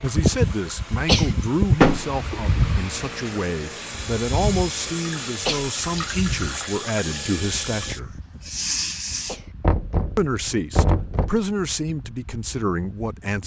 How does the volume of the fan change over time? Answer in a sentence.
The loudness of the fan goes down.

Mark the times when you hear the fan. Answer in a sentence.
You can hear the fan from 0.0 to 13.4 s.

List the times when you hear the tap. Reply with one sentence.
The tap can be heard from 0.0 to 9.4 s.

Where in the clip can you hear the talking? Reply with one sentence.
You can hear the talking from 0.0 to 8.1 s and from 10.2 to 13.4 s.